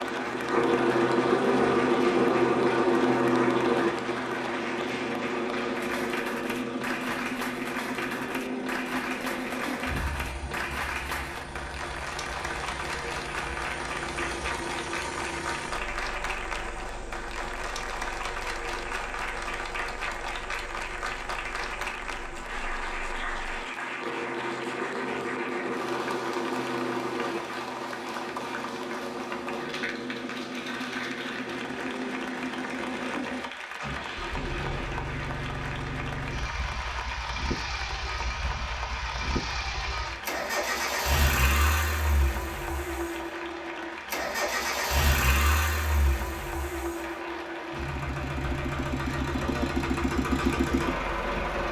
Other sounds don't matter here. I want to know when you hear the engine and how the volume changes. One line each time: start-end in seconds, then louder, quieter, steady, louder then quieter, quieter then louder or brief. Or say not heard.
0.0-51.6 quieter then louder.